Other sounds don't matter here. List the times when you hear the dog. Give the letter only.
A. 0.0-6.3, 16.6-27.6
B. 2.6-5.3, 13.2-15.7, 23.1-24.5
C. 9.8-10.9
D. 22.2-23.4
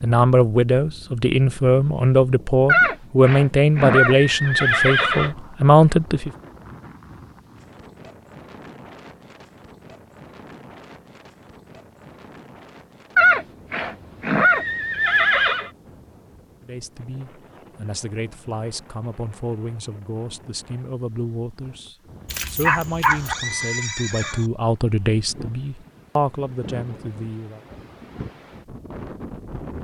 D.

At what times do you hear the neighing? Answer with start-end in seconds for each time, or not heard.
2.6-5.3, 13.2-15.7, 23.1-24.5.